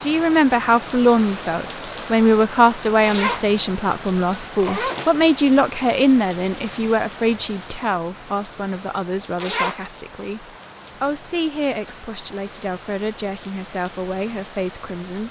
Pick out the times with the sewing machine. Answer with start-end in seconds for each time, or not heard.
not heard.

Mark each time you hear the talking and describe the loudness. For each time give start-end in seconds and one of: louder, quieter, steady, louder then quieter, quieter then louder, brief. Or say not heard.
0.0-15.2 quieter.